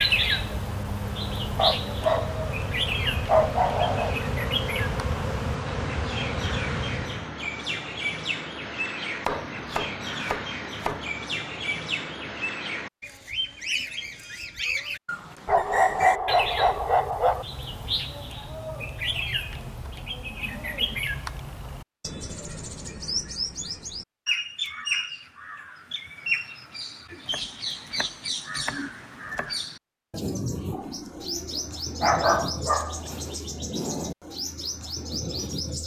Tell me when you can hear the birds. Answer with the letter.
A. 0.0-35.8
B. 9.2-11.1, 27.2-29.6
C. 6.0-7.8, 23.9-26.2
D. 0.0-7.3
A.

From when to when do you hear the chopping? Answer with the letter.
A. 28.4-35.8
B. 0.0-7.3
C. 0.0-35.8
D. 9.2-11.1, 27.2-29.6
D.